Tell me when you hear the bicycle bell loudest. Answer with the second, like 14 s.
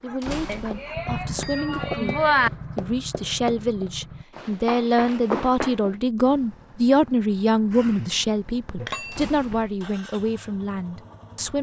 2 s.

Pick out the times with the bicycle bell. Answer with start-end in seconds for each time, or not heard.
0.5-2.5, 8.8-9.7.